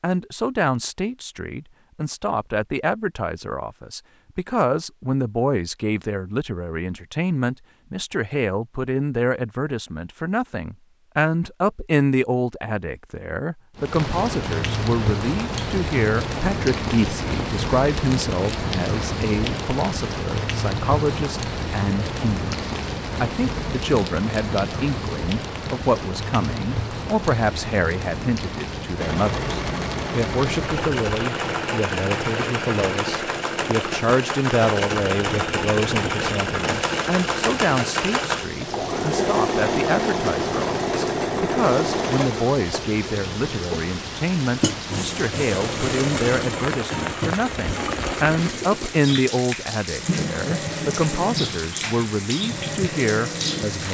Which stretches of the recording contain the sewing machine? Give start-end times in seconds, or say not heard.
28.9-53.9.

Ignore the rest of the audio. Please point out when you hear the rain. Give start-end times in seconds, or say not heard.
13.8-53.9.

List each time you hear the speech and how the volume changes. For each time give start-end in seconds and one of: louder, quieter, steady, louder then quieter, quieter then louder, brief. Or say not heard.
0.0-53.9 steady.